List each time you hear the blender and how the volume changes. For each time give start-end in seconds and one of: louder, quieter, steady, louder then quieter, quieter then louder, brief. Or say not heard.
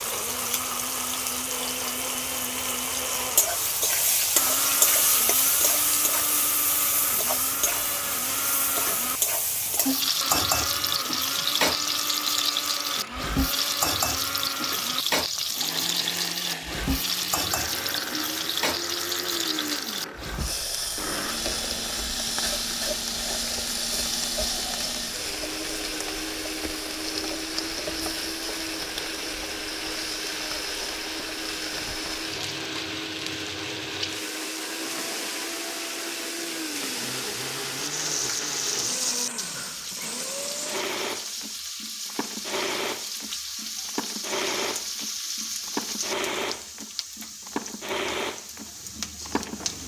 0.0-49.8 steady.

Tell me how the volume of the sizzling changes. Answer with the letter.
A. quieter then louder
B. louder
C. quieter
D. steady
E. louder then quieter
C.